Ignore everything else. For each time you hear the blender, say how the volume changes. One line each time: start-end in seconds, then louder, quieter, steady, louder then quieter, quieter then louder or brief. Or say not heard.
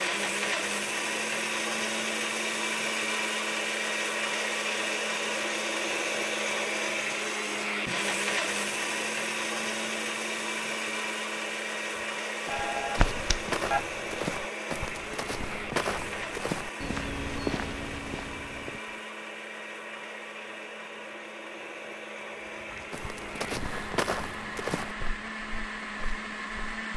0.0-26.9 quieter.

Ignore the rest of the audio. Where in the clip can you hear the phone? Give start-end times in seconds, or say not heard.
12.4-13.8.